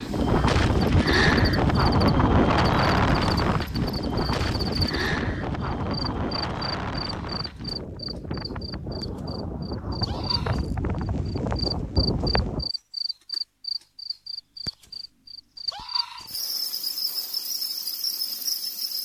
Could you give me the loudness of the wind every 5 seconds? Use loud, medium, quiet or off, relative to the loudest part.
loud, medium, medium, off.